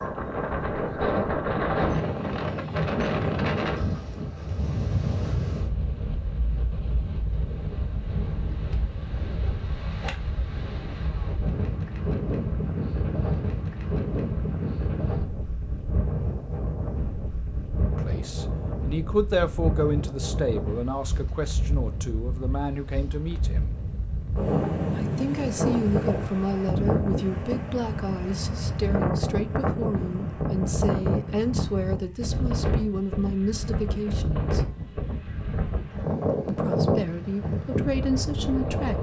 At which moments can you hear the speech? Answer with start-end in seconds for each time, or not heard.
17.9-23.7, 24.9-34.6, 36.5-38.9.